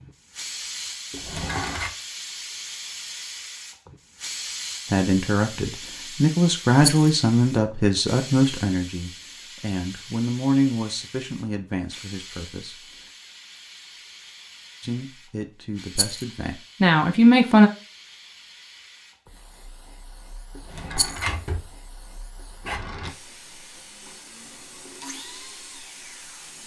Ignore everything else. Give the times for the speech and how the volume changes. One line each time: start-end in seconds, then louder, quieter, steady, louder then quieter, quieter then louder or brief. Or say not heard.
4.9-12.8 quieter
14.8-17.7 brief.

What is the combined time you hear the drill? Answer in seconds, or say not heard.
3 s.